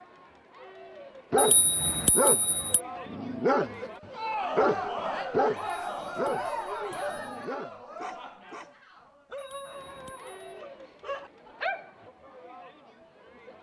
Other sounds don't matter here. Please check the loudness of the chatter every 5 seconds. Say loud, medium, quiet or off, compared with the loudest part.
loud, loud, quiet.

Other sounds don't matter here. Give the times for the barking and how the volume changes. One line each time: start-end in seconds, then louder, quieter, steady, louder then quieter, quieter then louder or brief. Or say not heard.
1.3-3.8 brief
4.5-12.1 quieter then louder.